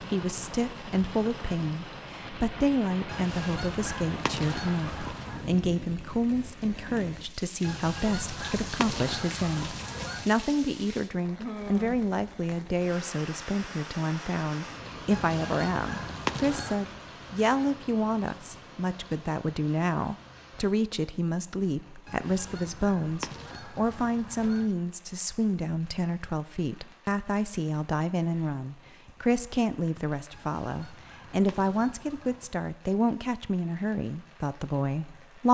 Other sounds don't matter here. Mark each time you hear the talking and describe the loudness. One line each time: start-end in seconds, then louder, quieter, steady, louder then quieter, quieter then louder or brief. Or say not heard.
0.0-35.4 steady.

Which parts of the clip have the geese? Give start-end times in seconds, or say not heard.
3.0-5.5, 7.6-10.3, 15.1-16.9, 22.1-24.7, 30.3-32.6.